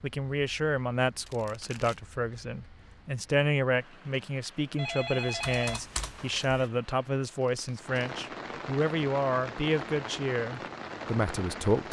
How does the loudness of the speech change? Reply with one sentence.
The volume of the speech stays about the same.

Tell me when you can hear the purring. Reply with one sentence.
You can't hear the purring here.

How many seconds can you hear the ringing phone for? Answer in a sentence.
The ringing phone can be heard for 2 seconds in total.